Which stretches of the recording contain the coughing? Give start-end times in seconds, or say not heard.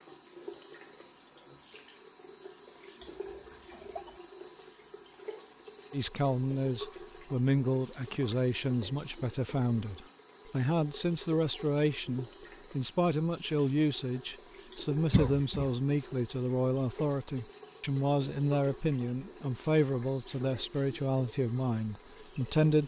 3.0-4.2, 15.1-15.7.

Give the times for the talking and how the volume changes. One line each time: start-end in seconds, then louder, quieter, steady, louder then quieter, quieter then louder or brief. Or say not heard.
5.9-22.8 steady.